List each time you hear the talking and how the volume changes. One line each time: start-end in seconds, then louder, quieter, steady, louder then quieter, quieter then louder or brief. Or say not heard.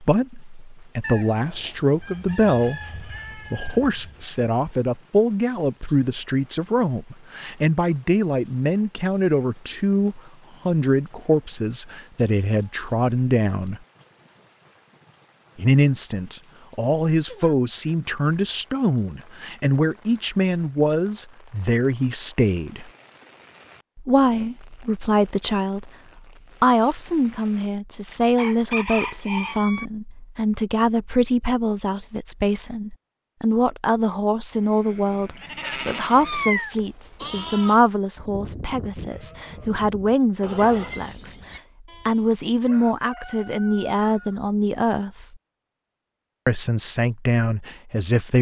0.0-13.8 steady
15.6-22.9 steady
23.9-25.9 brief
26.6-45.4 steady
46.5-48.3 brief.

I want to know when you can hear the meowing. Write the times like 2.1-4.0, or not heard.
35.6-36.8.